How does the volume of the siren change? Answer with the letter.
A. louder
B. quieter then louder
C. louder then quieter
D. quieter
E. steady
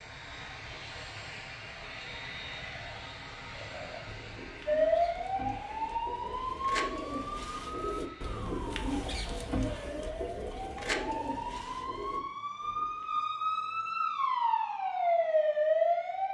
B.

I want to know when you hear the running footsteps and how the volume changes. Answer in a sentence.
You can't hear the running footsteps here.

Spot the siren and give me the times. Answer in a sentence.
The siren can be heard from 4.7 to 16.3 s.